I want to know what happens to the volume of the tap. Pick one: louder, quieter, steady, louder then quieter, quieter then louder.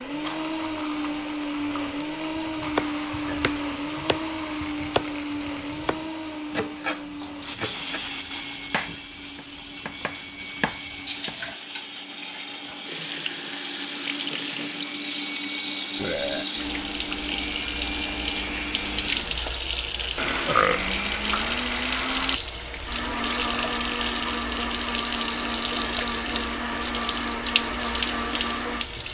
louder.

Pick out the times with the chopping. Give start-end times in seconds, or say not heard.
2.4-11.6.